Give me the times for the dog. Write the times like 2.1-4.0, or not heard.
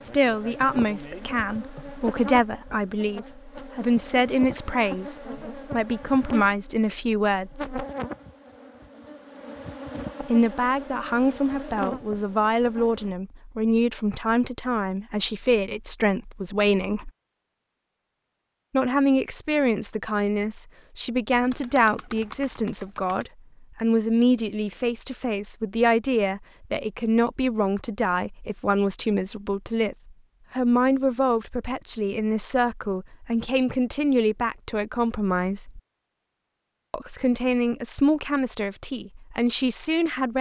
not heard.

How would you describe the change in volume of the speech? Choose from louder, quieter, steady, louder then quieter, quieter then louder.
steady.